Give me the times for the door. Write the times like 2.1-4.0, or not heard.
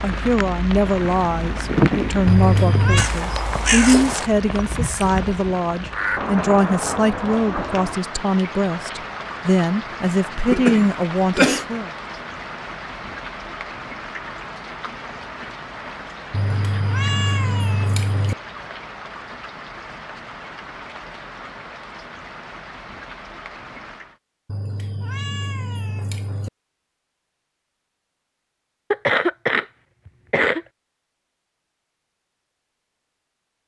not heard.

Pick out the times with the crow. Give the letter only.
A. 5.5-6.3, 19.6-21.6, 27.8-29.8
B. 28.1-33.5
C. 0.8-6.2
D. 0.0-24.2
C.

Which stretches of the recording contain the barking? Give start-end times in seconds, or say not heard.
not heard.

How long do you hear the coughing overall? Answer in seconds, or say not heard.
3 s.